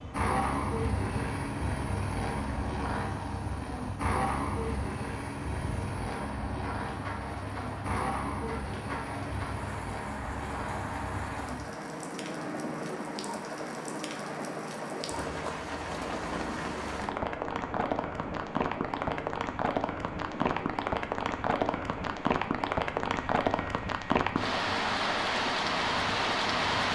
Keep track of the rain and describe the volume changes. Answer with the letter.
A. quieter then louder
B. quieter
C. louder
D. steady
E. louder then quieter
C.